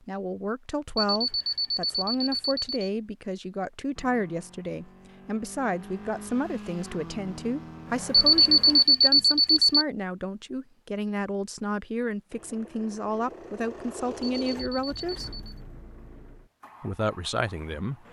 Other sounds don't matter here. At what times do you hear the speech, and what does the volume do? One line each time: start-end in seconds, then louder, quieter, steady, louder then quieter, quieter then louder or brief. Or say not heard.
0.1-15.4 steady
16.8-18.0 brief.